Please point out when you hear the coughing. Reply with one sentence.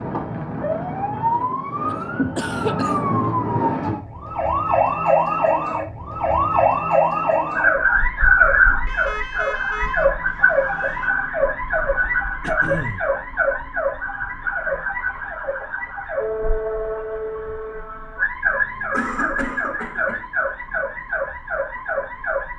The coughing can be heard from 1.9 to 3.2 s, from 12.4 to 13.1 s and from 18.9 to 20.2 s.